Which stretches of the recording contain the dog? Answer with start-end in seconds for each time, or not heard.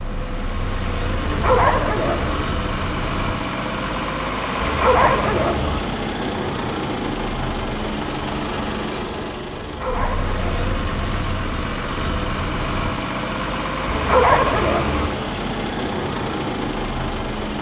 1.2-2.5, 4.6-5.8, 9.6-10.7, 13.8-15.1.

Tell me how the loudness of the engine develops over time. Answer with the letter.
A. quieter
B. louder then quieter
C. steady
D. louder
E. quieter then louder
C.